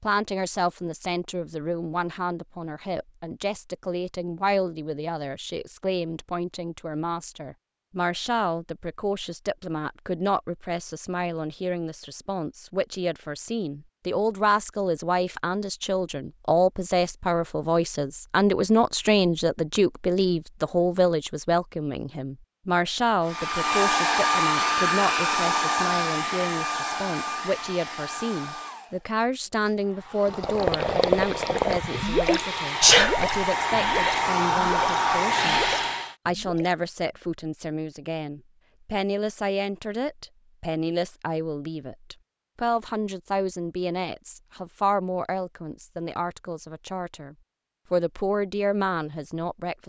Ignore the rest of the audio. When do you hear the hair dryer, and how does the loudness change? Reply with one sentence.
The hair dryer can be heard from 23.2 to 36.1 s, getting quieter then louder.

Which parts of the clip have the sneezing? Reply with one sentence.
You can hear the sneezing from 31.8 to 33.4 s.